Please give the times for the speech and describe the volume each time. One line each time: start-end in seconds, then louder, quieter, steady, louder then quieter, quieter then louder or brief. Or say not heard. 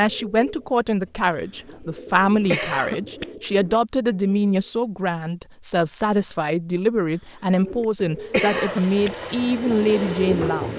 0.0-10.7 steady.